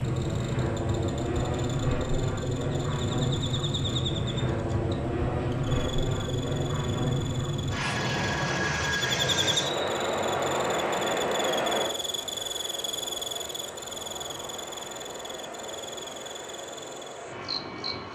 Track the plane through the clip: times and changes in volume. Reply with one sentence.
You can hear the plane from 0.0 to 18.1 s, getting quieter.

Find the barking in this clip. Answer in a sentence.
The barking can't be heard in this clip.